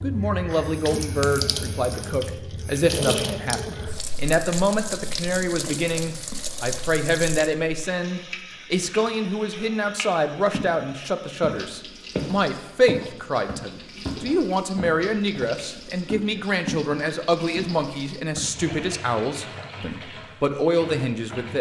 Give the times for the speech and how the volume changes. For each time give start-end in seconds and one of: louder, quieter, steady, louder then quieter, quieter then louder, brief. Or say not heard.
0.0-21.5 steady.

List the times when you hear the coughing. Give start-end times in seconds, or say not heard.
not heard.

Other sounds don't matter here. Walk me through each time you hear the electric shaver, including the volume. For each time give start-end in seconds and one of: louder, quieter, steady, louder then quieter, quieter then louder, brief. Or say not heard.
not heard.